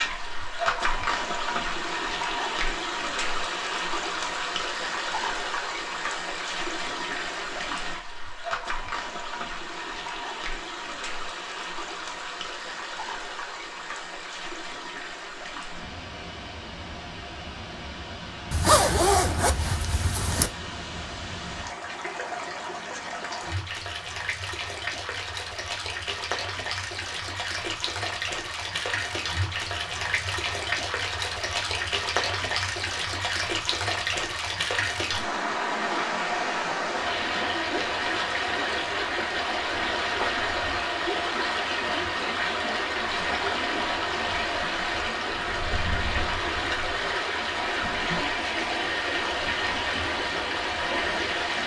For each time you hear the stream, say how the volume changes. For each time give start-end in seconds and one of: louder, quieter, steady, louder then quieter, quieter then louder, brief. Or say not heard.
0.0-51.6 quieter then louder.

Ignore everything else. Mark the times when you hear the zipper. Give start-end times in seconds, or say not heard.
18.5-20.5.